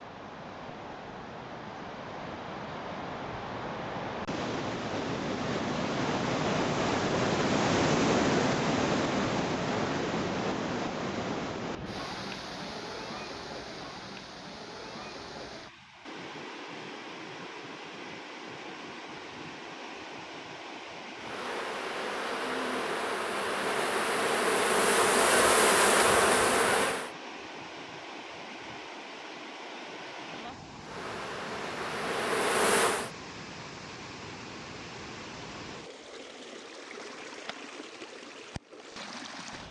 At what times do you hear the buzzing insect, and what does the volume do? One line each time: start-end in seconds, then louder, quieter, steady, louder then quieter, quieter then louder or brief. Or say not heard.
21.1-27.1 louder
30.8-33.1 brief.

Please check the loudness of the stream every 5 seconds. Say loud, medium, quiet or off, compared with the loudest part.
medium, loud, medium, quiet, quiet, quiet, quiet, quiet.